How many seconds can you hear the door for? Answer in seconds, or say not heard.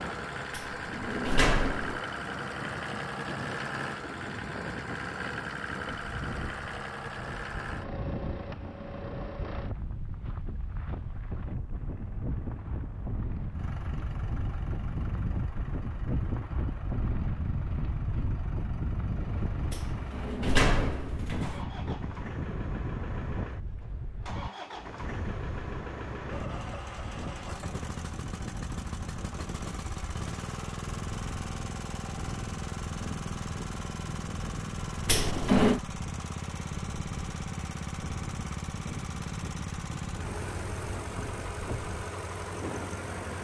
4 s.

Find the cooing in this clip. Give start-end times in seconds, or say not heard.
not heard.